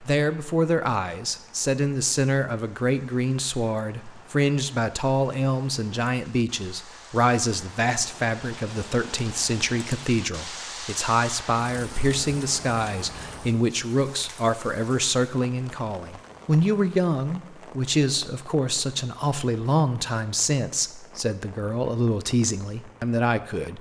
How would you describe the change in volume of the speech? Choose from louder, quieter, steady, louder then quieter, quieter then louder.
steady.